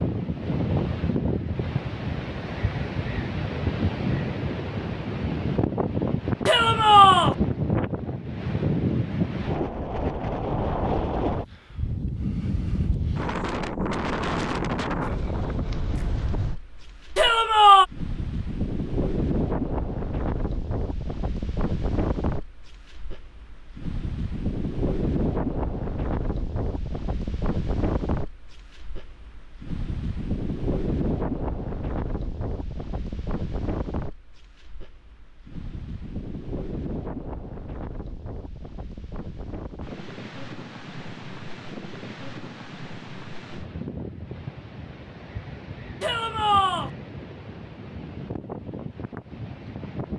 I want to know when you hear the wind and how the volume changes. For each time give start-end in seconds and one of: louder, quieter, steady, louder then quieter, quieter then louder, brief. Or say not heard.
0.0-50.1 quieter.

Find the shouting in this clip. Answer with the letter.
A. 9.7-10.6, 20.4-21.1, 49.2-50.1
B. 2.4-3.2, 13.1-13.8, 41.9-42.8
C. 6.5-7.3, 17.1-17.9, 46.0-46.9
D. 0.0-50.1
C.